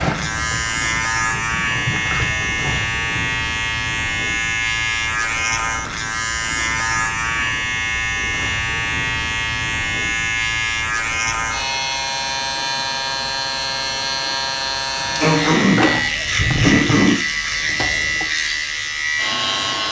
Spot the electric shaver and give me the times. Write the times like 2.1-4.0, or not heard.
0.0-19.8.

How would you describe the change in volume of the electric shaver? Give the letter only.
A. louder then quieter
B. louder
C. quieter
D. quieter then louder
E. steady
E.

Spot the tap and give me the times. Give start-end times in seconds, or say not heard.
0.0-3.2, 14.9-18.2.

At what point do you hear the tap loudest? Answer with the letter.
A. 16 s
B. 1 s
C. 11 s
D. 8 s
A.